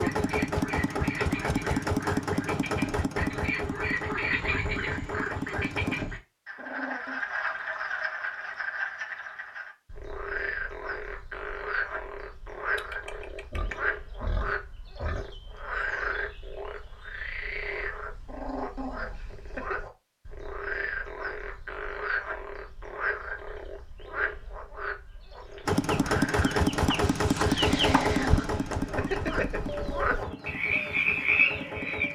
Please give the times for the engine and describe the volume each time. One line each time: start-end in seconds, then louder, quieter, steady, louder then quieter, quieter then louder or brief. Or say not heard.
0.0-6.0 quieter
25.6-32.1 quieter.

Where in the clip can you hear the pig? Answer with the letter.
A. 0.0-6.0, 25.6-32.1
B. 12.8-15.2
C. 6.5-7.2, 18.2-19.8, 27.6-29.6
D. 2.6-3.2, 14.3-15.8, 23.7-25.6
B.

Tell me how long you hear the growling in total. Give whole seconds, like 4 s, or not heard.
4 s.